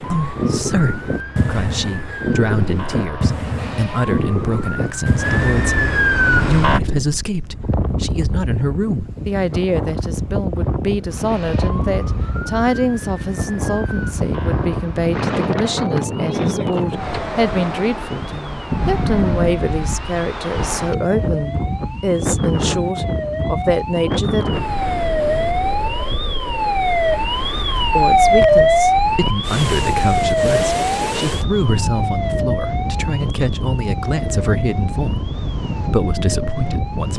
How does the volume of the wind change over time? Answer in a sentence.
The volume of the wind stays about the same.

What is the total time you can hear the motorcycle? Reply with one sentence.
You can't hear the motorcycle here.